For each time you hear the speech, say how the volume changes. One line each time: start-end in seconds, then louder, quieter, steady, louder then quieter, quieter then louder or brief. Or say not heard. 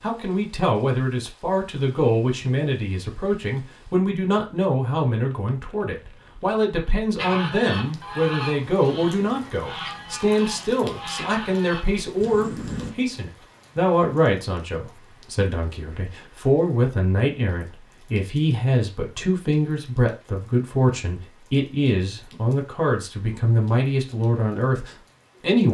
0.0-25.6 steady.